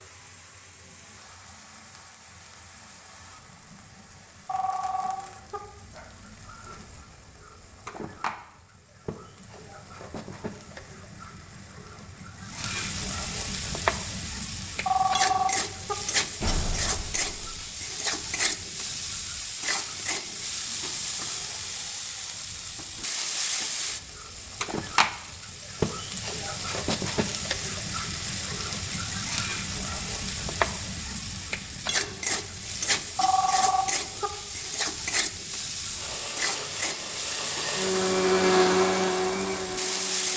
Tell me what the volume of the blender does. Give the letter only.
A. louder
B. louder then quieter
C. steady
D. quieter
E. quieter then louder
B.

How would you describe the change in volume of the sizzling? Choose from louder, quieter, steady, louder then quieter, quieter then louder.
louder.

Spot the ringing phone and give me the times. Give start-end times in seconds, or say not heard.
4.5-5.6, 14.8-15.9, 33.1-34.3.